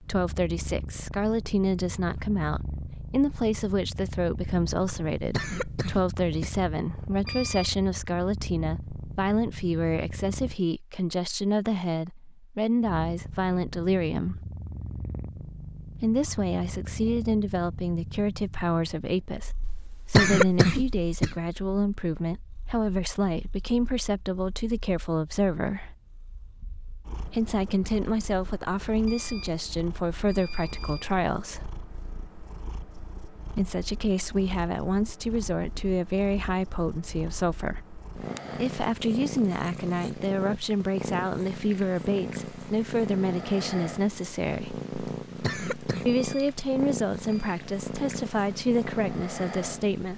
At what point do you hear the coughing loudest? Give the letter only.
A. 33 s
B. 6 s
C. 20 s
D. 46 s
C.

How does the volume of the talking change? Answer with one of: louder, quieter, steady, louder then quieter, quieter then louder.
steady.